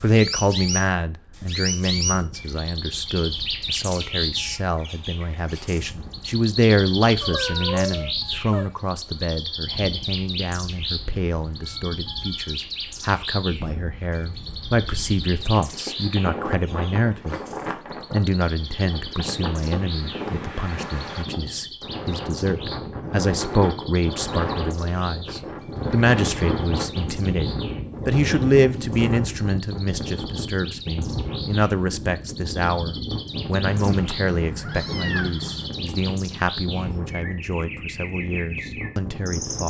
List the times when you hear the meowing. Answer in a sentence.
The meowing can be heard from 7.2 to 8.7 s and from 33.7 to 35.7 s.